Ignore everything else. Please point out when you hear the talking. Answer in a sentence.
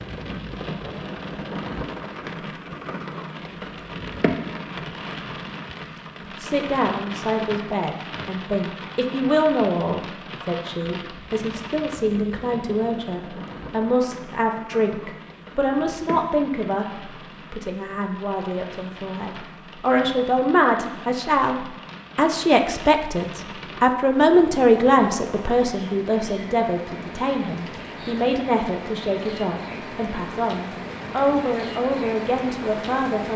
The talking can be heard from 6.3 to 33.3 s.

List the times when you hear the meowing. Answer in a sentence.
The meowing can't be heard in this clip.